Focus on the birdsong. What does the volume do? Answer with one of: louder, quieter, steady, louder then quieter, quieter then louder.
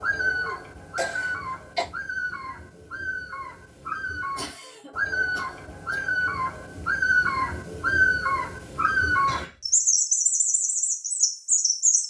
louder.